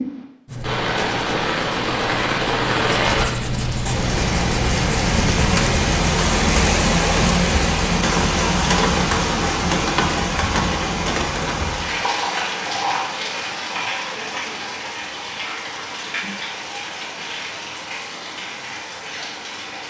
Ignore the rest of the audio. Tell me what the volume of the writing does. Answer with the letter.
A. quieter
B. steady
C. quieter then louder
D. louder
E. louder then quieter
D.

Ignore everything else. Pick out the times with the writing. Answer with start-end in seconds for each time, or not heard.
0.5-5.8.